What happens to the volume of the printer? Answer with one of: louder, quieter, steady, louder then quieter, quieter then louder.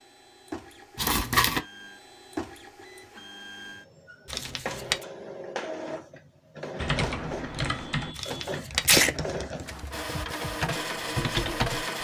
louder.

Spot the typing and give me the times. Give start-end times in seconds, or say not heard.
6.8-11.8.